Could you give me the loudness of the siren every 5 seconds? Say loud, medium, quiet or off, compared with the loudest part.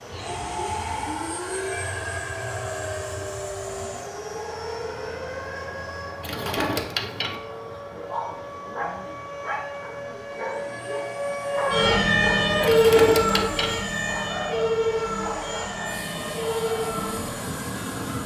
quiet, quiet, loud, medium.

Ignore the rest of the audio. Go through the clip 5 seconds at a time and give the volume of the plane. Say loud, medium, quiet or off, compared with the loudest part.
loud, medium, medium, loud.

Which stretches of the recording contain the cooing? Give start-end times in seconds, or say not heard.
6.2-7.3, 12.6-13.8.